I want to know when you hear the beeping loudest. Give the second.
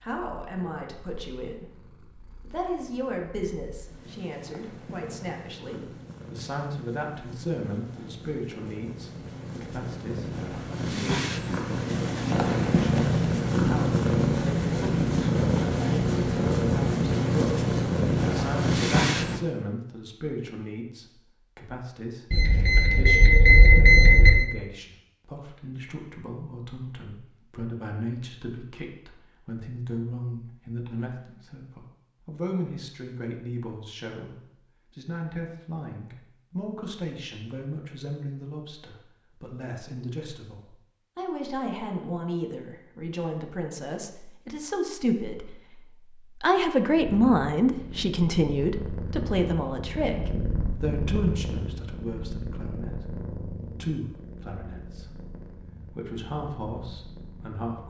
24 s.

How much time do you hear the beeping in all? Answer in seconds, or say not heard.
2 s.